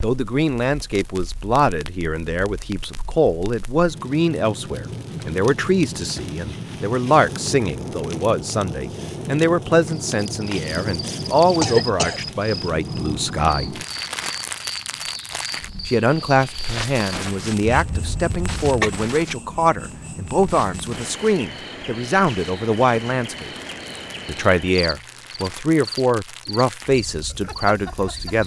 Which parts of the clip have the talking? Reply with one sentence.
You can hear the talking from 0.0 to 13.8 s, from 15.8 to 23.5 s and from 24.2 to 28.4 s.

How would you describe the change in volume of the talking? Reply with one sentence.
The volume of the talking stays about the same.